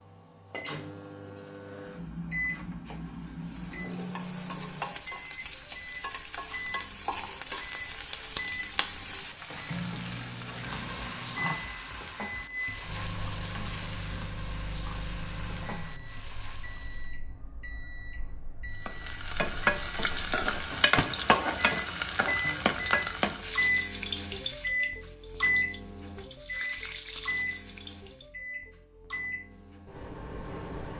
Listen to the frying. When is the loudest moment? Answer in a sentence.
The volume of the frying peaks at 21 seconds.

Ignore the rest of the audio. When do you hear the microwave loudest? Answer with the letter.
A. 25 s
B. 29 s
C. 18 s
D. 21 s
A.